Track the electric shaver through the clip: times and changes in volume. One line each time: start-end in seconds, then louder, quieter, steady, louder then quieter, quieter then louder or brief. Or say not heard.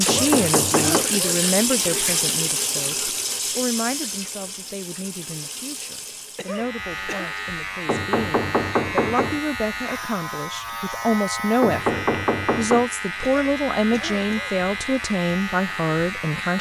6.4-16.5 steady.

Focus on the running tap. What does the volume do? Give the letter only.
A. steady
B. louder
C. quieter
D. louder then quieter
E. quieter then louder
C.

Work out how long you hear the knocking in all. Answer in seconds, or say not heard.
4 s.